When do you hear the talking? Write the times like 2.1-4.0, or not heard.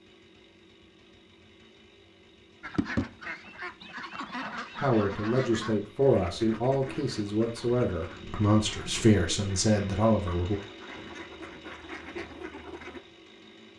4.8-10.6.